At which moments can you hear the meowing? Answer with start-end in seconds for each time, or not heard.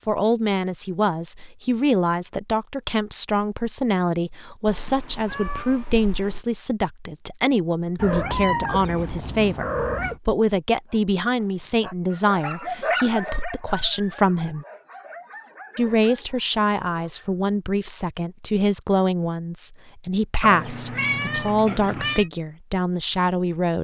4.7-6.5, 8.0-10.2, 20.4-22.3.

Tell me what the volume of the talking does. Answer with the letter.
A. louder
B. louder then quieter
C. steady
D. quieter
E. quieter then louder
C.